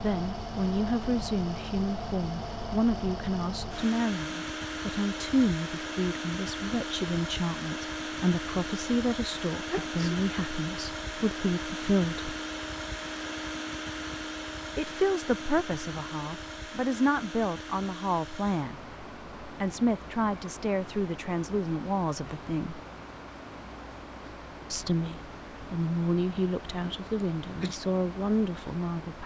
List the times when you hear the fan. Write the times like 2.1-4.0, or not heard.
0.0-29.2.